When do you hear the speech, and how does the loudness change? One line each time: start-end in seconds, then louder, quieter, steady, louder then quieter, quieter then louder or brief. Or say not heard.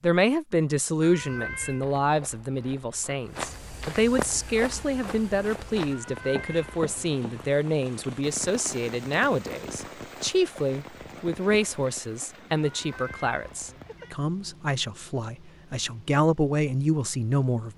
0.0-17.7 steady.